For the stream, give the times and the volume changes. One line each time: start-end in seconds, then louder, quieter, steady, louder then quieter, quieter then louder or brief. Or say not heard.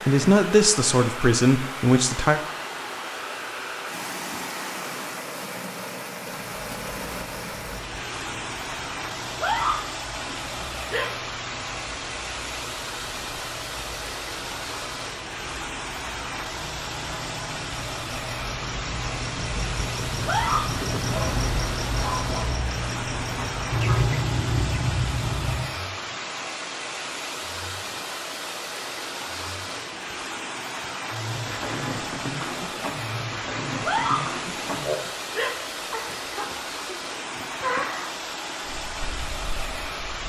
0.0-40.2 steady.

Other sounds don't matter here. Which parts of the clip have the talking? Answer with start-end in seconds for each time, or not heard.
0.1-2.4.